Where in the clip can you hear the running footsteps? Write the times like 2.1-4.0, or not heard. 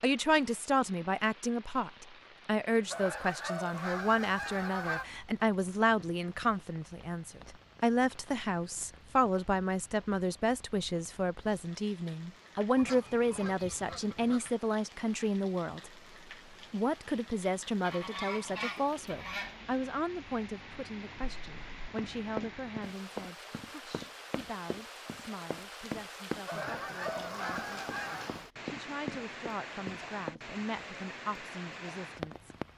21.1-30.4.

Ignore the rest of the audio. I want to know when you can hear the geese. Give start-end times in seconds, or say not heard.
2.9-5.0, 12.8-14.6, 17.8-19.6, 26.4-28.4.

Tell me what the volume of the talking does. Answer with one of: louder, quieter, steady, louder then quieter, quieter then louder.
quieter.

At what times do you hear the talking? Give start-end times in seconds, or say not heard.
0.0-15.9, 16.7-32.5.